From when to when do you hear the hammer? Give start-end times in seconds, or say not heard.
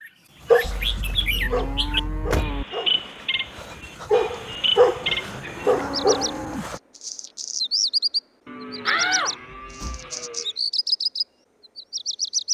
not heard.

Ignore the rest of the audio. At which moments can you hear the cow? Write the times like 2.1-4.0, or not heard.
0.6-2.6, 5.0-6.8, 8.4-10.6.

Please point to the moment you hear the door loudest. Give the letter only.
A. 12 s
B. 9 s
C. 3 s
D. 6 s
B.